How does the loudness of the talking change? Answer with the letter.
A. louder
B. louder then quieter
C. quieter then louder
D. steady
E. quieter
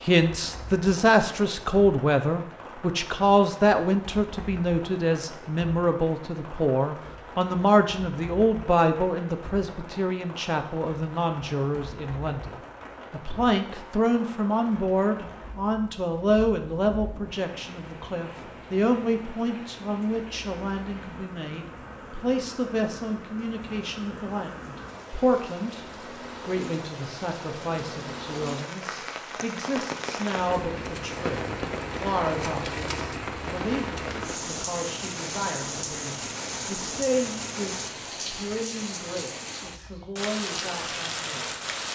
E.